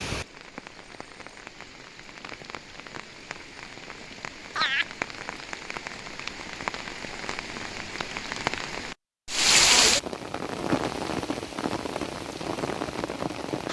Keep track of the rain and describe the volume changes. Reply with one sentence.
The loudness of the rain goes up, then down.